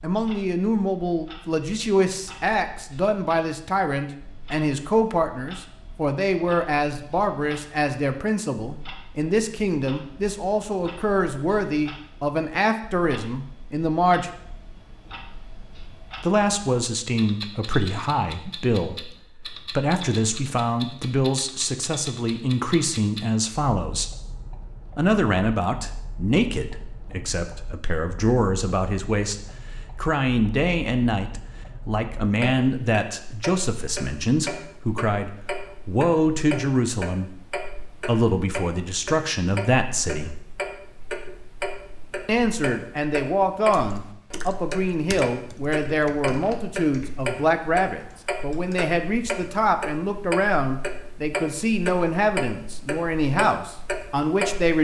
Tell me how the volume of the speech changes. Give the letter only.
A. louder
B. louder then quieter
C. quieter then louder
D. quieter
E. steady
E.